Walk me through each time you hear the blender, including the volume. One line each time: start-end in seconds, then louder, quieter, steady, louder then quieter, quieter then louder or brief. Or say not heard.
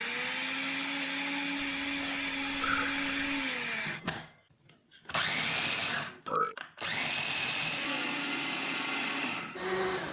0.0-10.0 steady.